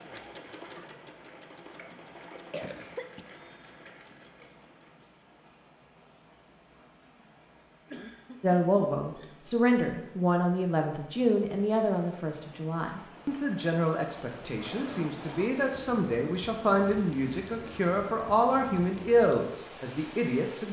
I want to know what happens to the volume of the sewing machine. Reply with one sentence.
The volume of the sewing machine goes down.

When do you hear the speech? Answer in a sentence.
The speech can be heard from 8.4 to 20.6 s.